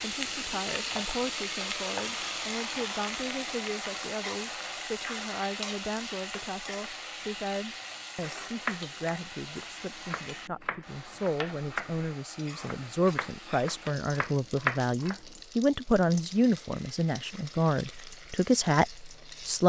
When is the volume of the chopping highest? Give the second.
15 s.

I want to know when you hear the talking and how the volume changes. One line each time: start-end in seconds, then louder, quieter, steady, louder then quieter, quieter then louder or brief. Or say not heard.
0.0-19.6 louder.